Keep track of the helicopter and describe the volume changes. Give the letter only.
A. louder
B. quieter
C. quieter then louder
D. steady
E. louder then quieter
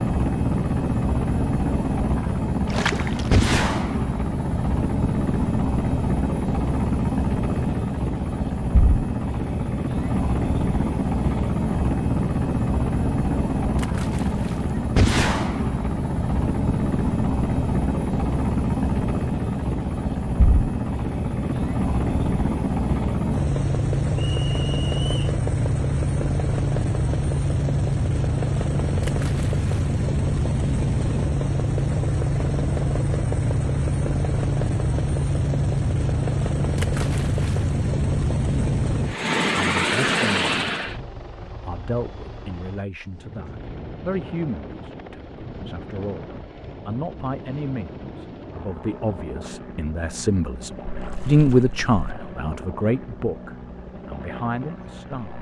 B.